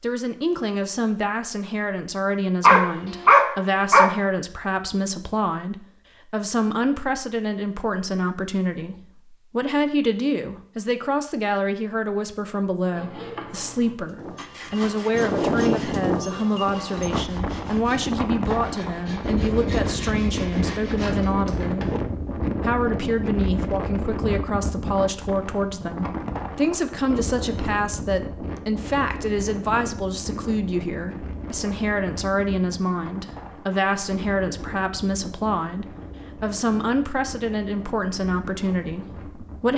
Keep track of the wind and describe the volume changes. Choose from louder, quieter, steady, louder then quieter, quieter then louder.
quieter.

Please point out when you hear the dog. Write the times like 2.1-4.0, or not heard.
2.6-4.1.